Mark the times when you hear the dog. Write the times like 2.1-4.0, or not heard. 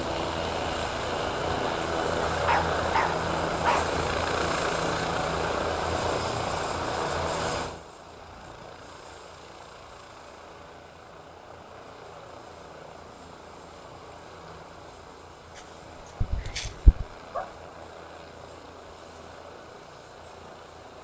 2.2-4.0, 16.2-17.4.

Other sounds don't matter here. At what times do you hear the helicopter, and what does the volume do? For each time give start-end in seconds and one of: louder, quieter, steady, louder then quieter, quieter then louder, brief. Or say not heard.
0.0-20.9 quieter.